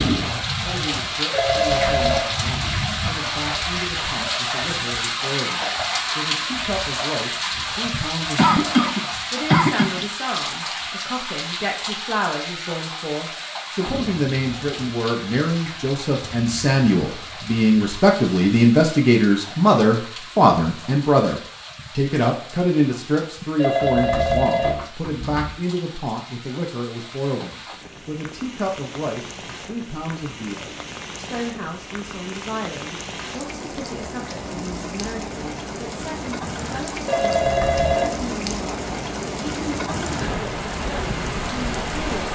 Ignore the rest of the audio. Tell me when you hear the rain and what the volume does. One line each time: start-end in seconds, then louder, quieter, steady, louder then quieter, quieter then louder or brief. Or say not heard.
0.0-42.3 quieter then louder.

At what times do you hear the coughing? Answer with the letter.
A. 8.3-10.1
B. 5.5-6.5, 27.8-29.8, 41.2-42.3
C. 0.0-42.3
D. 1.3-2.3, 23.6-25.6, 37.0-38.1
A.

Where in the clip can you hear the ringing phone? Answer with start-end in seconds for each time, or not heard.
1.3-2.3, 23.6-25.6, 37.0-38.1.